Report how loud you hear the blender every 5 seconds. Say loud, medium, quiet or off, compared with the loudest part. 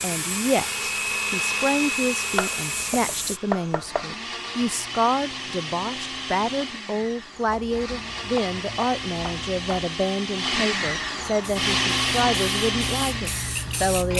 loud, medium, loud.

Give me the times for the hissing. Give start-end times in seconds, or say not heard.
0.0-3.4, 11.4-14.1.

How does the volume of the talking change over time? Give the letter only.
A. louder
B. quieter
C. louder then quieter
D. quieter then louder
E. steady
E.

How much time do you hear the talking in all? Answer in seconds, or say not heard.
14 s.